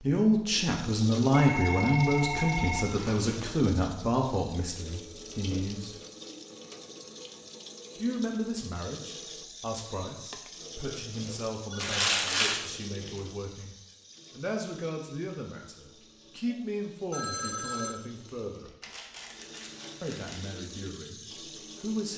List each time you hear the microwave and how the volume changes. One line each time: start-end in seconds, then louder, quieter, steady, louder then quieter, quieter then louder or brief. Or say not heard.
not heard.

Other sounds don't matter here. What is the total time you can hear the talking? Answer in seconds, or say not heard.
19 s.